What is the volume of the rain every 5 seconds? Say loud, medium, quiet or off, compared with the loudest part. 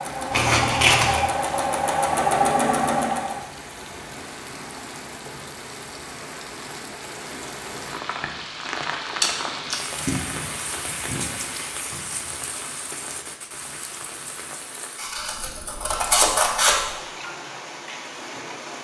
loud, loud, loud, medium.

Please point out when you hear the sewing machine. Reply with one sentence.
The sewing machine can be heard from 0.0 to 3.5 s.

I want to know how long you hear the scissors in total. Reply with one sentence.
The scissors can be heard for 4 seconds in total.